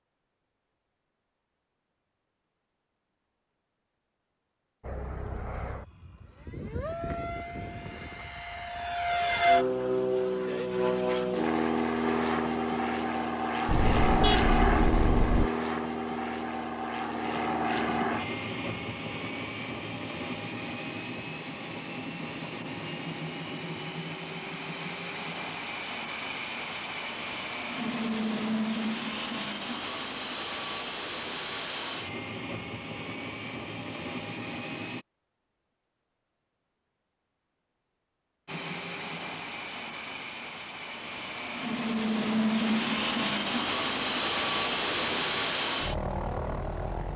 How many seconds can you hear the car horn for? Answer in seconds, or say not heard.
2 s.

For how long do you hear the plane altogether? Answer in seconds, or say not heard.
39 s.